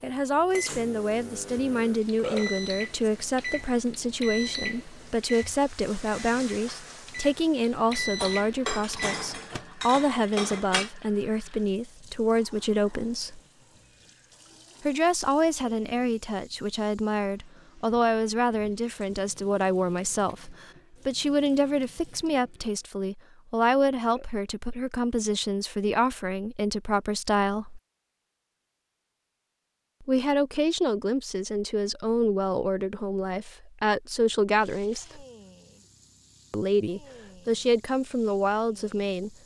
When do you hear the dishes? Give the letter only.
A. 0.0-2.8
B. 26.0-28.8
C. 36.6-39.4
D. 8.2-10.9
D.